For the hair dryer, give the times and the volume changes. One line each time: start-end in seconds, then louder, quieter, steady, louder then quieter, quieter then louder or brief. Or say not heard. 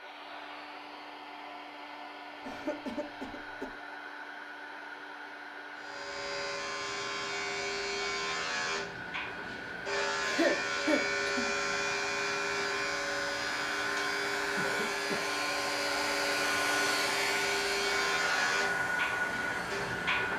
0.0-20.3 louder.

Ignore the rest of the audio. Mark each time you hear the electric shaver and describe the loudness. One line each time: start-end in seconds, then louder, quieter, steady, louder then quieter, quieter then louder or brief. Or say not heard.
5.8-20.3 steady.